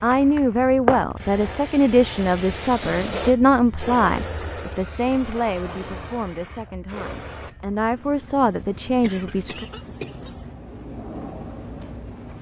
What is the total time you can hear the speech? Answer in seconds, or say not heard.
10 s.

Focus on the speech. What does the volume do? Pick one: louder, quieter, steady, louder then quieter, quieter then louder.
quieter then louder.